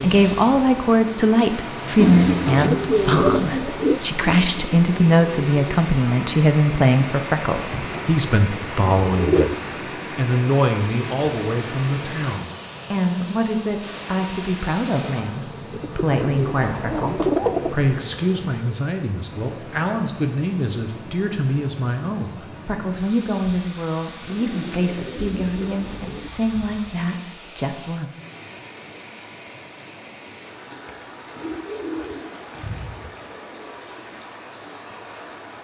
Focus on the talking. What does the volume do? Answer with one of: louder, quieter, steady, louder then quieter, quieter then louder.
quieter.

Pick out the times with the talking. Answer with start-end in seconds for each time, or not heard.
0.0-9.5, 10.2-28.1.